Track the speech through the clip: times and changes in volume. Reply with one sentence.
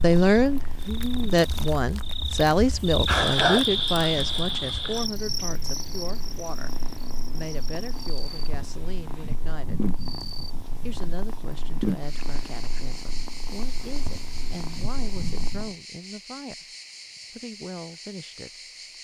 The speech can be heard from 0.0 to 9.8 s, getting quieter; and from 10.8 to 18.7 s, at a steady volume.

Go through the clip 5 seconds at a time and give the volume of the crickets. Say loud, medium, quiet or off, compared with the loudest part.
loud, medium, medium, quiet.